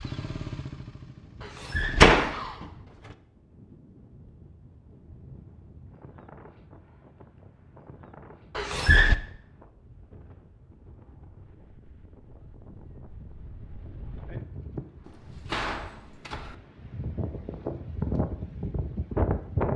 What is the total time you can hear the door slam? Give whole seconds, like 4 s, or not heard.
3 s.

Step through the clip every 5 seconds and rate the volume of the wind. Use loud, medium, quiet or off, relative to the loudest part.
quiet, quiet, quiet, loud.